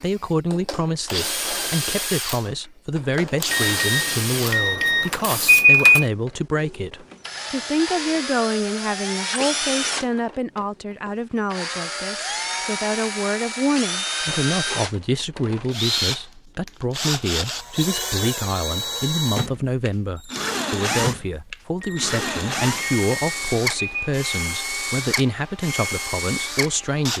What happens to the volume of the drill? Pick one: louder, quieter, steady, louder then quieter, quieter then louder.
steady.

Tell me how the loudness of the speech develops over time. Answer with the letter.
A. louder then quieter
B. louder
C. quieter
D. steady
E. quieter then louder
D.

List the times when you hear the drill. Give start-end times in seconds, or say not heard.
0.0-27.1.